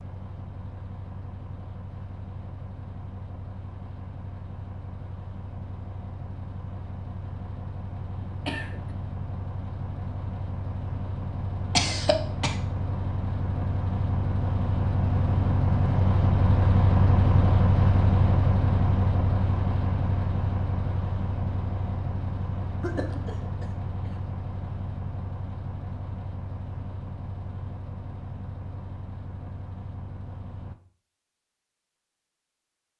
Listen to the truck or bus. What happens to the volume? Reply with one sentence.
The volume of the truck or bus goes up, then down.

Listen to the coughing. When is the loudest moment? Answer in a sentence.
The volume of the coughing peaks at 12 seconds.